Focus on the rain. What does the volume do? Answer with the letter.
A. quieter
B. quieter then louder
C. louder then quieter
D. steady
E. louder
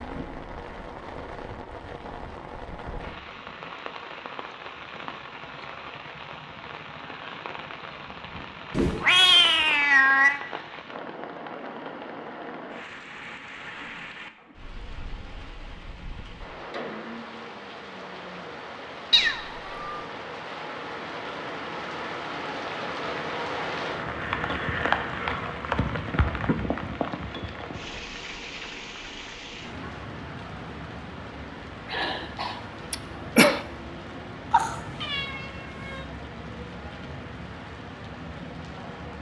C.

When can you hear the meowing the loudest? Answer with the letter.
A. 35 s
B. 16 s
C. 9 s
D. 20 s
C.